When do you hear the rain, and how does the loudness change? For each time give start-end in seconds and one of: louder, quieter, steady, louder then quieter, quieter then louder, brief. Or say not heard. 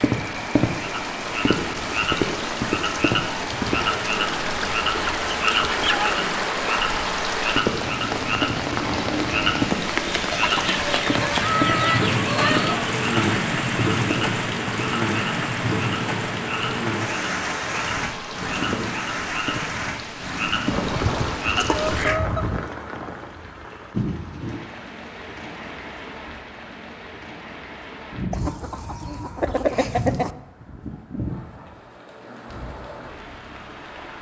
0.0-34.1 louder then quieter.